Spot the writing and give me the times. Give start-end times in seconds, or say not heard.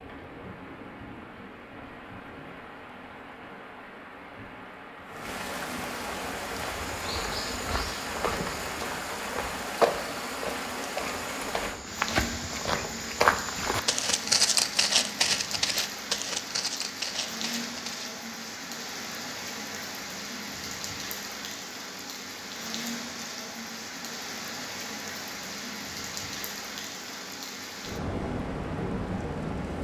not heard.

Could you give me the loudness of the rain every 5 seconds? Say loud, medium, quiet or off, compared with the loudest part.
medium, loud, loud, loud, loud, loud.